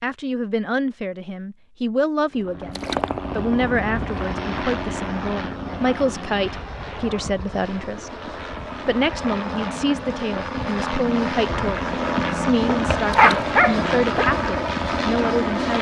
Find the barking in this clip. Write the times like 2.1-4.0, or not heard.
12.7-14.3.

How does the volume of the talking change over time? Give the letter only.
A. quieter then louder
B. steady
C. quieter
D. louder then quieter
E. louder
B.